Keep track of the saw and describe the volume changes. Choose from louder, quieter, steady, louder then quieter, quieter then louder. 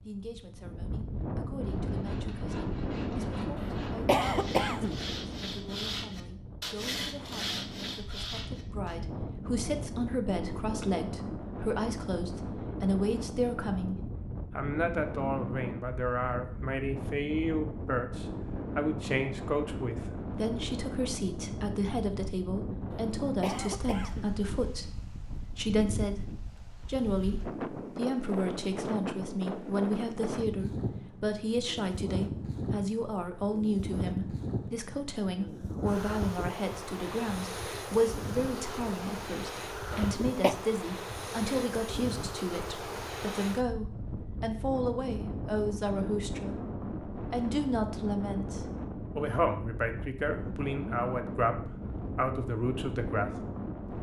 louder.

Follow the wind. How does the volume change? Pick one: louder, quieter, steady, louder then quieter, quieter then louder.
steady.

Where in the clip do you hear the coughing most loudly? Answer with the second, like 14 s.
4 s.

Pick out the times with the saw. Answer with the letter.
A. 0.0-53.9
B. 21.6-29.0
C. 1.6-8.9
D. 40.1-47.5
C.